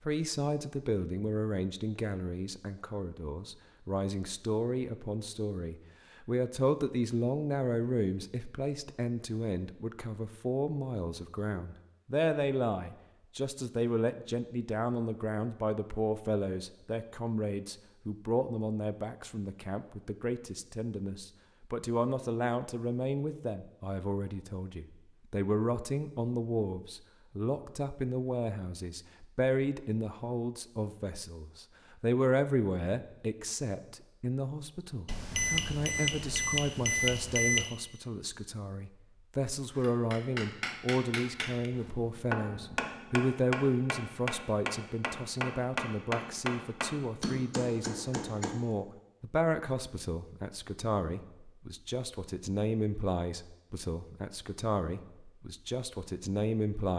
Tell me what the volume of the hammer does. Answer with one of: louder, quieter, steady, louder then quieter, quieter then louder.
steady.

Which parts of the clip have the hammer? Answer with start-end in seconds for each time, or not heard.
39.8-48.6.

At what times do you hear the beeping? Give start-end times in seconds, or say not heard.
35.0-37.8.